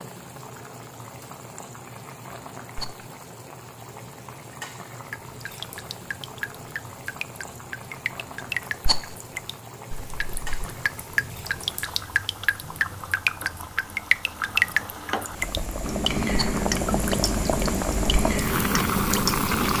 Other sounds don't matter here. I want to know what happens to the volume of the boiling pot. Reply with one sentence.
The loudness of the boiling pot goes up.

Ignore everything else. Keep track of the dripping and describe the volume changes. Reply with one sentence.
The loudness of the dripping goes up.